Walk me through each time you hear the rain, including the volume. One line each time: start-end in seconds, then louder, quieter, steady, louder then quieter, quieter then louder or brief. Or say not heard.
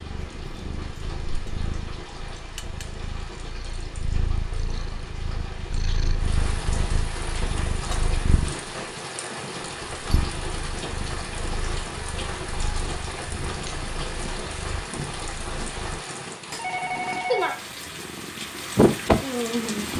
0.0-19.9 louder.